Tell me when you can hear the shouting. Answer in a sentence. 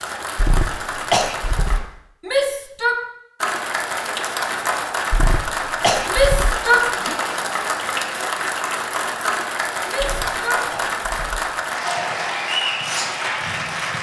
The shouting can be heard from 2.2 to 3.0 s, from 6.1 to 7.2 s and from 9.8 to 10.7 s.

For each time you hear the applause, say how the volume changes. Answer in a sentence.
The applause can be heard briefly from 0.0 to 1.8 s; and from 3.4 to 13.9 s, at a steady volume.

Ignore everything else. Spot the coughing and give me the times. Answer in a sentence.
You can hear the coughing from 0.3 to 1.9 s, from 5.1 to 6.6 s and from 9.9 to 11.5 s.